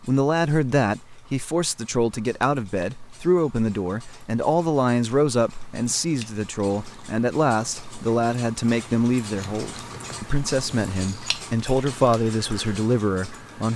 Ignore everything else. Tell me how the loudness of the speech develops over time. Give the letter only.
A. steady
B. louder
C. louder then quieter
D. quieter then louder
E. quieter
A.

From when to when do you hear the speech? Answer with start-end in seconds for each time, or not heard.
0.0-13.7.